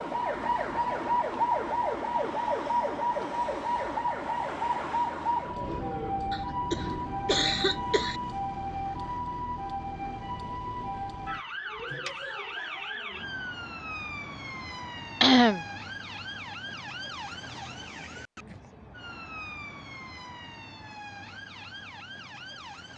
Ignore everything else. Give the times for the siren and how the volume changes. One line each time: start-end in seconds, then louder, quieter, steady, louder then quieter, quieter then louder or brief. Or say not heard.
0.0-22.9 quieter.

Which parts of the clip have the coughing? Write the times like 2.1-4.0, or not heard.
6.3-8.2, 15.2-15.6.